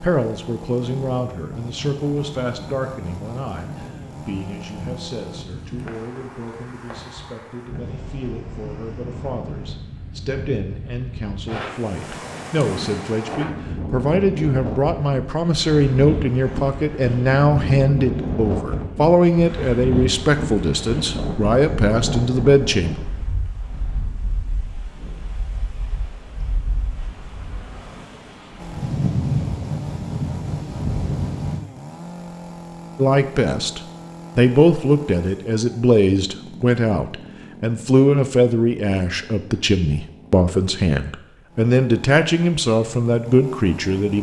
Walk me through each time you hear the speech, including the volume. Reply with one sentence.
You can hear the speech from 0.0 to 23.0 s, getting quieter then louder; and from 33.0 to 44.1 s, at a steady volume.